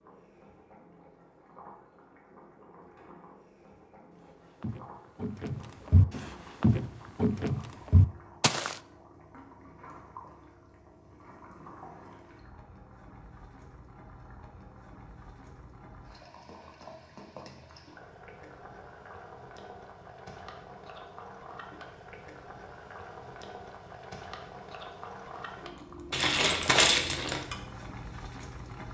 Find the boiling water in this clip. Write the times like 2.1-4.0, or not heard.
0.0-28.9.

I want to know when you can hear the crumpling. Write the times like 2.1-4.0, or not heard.
26.1-27.4.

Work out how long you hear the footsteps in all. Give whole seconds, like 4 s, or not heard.
4 s.